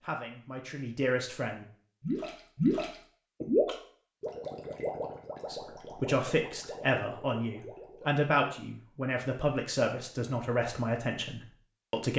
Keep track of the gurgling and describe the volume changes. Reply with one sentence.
The volume of the gurgling goes down.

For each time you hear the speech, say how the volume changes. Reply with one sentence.
You can hear the speech briefly from 0.0 to 1.6 s; and from 5.5 to 12.1 s, at a steady volume.